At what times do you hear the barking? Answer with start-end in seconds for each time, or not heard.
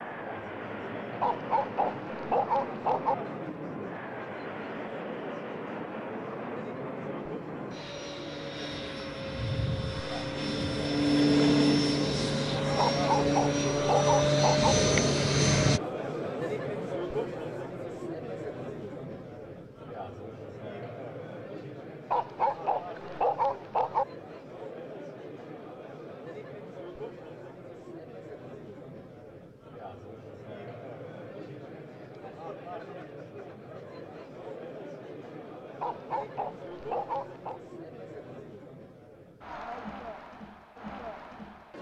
1.2-3.1, 12.8-14.8, 22.1-24.1, 35.8-37.6.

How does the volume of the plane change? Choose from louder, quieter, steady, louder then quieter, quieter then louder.
louder.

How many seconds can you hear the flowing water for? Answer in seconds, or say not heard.
not heard.